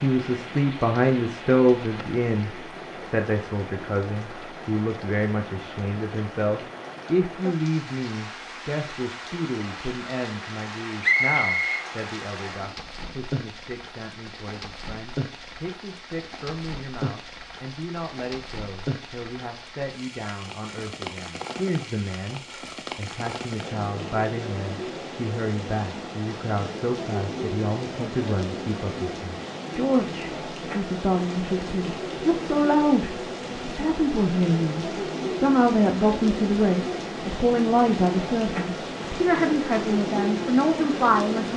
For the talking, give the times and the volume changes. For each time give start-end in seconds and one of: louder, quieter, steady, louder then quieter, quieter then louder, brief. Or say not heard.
0.0-41.5 quieter then louder.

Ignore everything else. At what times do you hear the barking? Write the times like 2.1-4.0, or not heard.
not heard.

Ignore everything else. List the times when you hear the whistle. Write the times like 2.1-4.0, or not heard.
11.0-11.8.